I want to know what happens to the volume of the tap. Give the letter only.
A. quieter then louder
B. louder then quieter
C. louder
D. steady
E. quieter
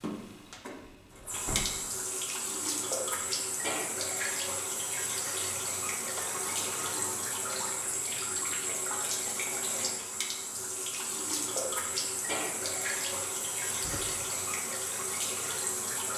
D.